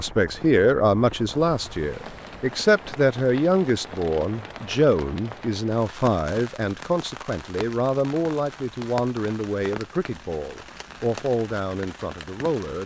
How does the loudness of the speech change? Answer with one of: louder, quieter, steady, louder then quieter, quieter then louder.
quieter.